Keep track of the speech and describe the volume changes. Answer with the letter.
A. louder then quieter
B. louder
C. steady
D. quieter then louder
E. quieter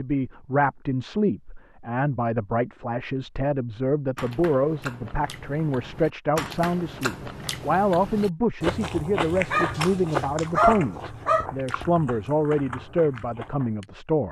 C.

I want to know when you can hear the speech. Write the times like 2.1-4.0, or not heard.
0.0-14.2.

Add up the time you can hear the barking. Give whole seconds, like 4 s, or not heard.
2 s.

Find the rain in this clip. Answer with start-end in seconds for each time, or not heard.
not heard.